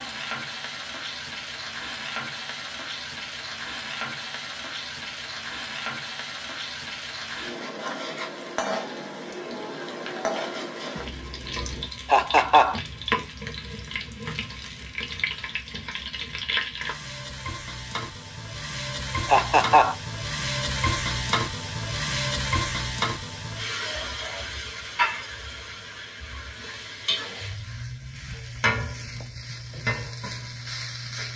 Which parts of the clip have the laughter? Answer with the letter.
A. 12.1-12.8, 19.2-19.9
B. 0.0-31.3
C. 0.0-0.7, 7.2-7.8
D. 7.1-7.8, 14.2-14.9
A.